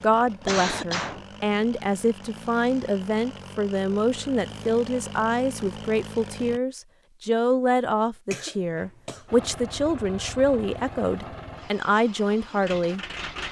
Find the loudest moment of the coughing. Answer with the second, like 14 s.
1 s.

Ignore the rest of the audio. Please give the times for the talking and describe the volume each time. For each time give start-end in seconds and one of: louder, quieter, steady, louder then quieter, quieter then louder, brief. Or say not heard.
0.0-13.0 steady.